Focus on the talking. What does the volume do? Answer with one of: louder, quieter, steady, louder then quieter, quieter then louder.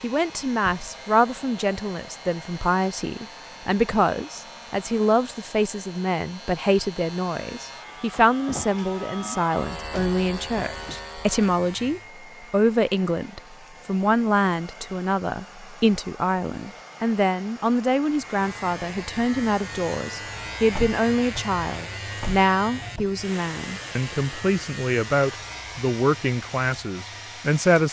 steady.